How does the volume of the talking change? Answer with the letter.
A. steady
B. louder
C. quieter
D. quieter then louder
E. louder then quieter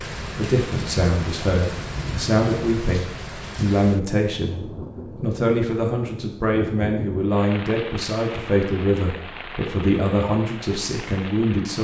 A.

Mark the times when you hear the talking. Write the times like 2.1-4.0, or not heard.
0.2-4.6, 5.2-11.7.